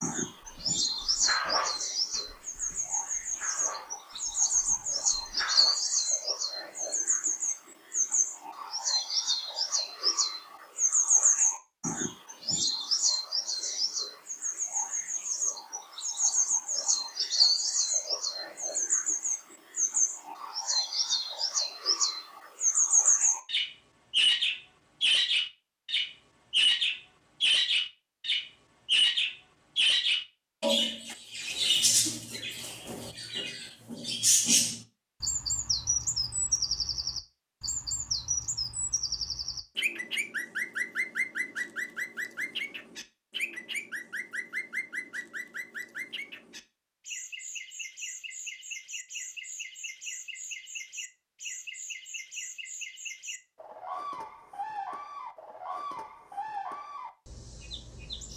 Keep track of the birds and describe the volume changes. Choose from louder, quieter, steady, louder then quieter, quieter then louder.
quieter.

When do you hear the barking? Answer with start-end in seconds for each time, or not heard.
0.4-5.8.